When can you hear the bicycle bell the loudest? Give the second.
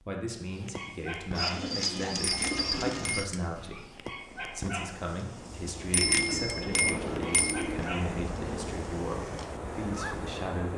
6 s.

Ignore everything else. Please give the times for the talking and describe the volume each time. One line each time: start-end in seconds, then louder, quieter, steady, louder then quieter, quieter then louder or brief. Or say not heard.
0.0-10.7 steady.